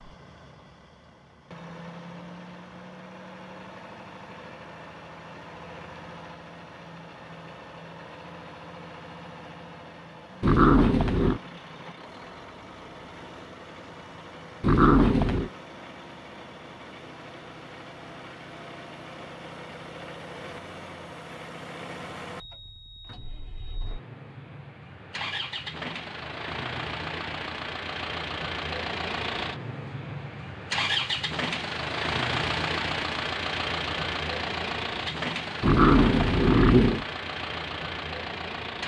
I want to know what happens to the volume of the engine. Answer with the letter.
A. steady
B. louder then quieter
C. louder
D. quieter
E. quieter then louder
C.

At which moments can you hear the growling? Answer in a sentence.
The growling can be heard from 10.4 to 11.4 s, from 14.6 to 15.5 s and from 35.6 to 37.0 s.